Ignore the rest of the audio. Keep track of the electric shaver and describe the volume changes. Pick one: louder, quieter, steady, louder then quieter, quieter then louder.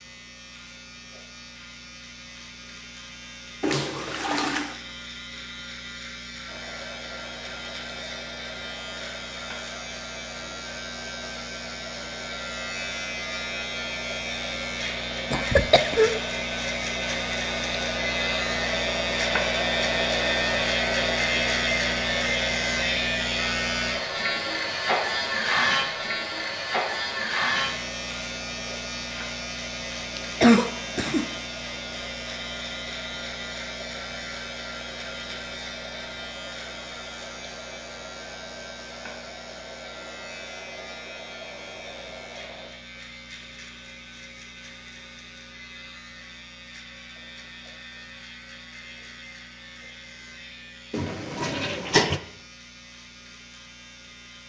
louder then quieter.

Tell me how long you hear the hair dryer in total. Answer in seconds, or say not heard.
36 s.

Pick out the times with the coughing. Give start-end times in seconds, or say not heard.
15.3-16.1, 30.1-31.3.